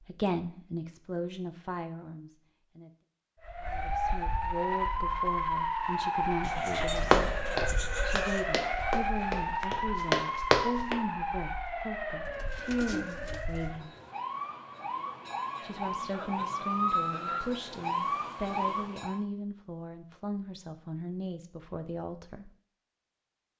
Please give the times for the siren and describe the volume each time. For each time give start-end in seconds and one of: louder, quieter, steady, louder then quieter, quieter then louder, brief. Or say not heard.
3.4-19.2 quieter then louder.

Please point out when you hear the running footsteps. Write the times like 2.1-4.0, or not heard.
7.0-10.9.